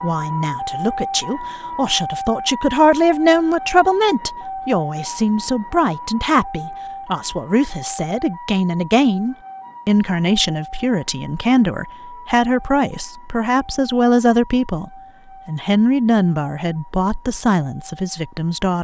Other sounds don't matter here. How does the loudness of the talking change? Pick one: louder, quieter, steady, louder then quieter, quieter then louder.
steady.